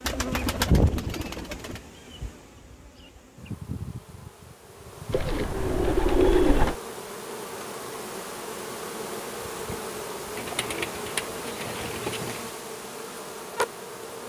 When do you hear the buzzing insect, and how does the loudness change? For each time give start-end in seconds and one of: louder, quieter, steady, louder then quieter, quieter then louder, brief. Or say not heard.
0.0-14.2 louder.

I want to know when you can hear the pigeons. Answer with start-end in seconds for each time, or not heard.
0.1-1.8, 5.1-6.8, 10.3-12.4.